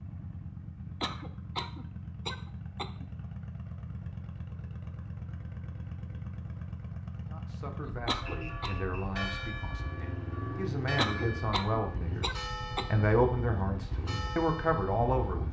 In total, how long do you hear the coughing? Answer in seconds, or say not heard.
5 s.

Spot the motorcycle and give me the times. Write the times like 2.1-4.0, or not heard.
0.0-15.4.